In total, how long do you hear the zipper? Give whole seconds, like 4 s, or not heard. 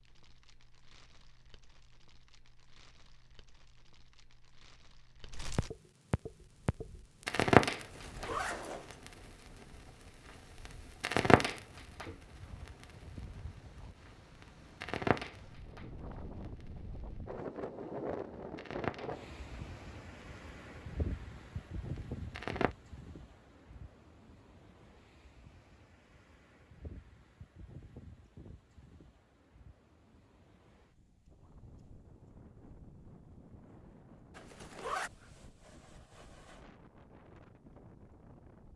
2 s.